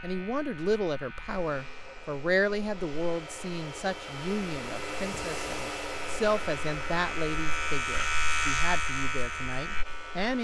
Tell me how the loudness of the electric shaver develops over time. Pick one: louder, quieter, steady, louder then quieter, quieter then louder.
louder.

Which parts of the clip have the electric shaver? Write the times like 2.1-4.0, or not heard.
0.0-10.3.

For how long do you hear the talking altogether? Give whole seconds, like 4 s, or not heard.
10 s.